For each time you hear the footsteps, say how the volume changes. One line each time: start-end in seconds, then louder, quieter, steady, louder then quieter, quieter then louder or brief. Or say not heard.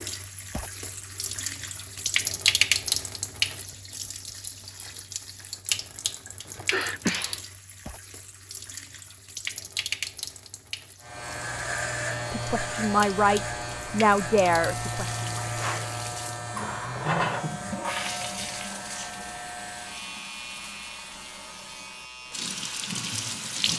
not heard.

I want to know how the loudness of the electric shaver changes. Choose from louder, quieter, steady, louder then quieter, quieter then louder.
quieter.